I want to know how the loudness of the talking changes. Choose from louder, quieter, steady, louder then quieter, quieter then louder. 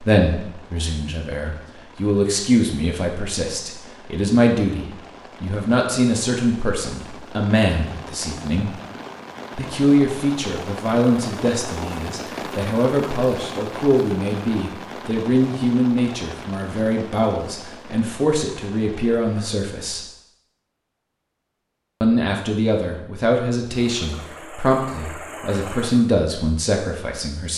steady.